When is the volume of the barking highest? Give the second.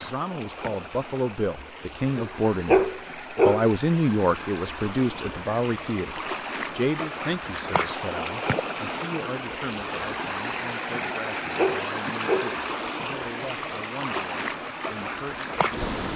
3 s.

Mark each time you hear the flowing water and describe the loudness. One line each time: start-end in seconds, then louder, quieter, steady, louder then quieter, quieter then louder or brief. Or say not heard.
0.0-16.1 louder.